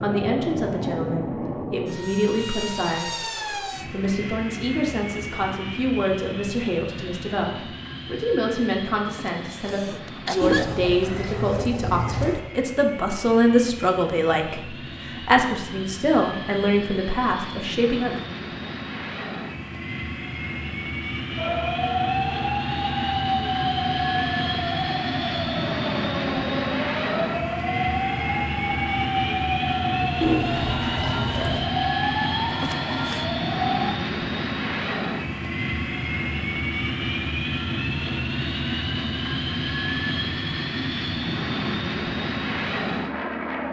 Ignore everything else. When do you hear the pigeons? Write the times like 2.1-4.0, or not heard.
10.4-12.4, 30.2-31.7.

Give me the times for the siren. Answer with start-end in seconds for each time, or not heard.
21.4-33.9.